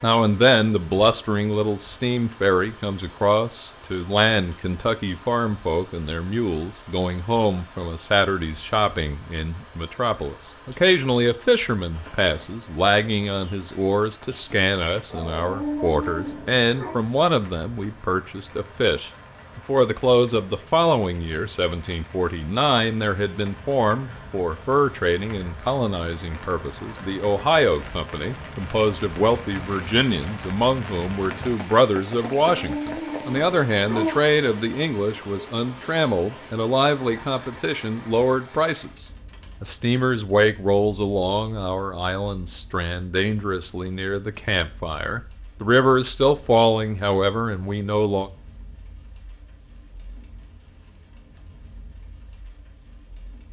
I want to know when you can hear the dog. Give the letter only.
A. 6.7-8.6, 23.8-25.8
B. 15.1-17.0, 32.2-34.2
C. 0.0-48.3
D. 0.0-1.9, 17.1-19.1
B.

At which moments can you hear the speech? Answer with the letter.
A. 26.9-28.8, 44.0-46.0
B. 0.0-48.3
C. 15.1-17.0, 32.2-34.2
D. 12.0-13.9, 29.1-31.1
B.